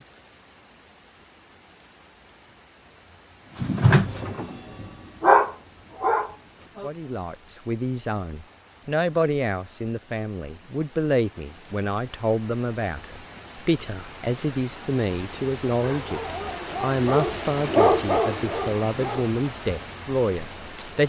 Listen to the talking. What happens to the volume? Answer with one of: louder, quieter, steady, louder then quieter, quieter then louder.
steady.